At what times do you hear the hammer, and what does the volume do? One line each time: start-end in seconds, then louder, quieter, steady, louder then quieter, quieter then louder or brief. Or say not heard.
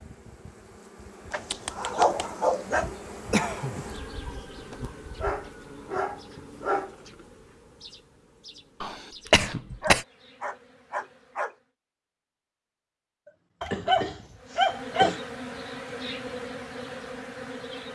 not heard.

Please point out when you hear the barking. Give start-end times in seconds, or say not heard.
1.3-2.9, 4.7-7.0, 9.8-11.6, 13.6-15.2.